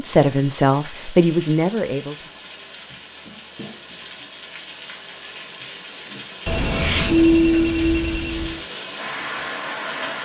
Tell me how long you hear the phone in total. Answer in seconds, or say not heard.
2 s.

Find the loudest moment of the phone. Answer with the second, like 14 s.
7 s.